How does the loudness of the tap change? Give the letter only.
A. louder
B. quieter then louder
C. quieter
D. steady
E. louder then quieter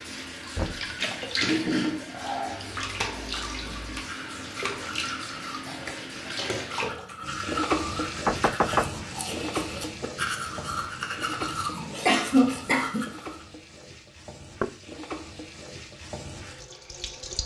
C.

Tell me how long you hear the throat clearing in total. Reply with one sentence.
The throat clearing can be heard for 3 seconds in total.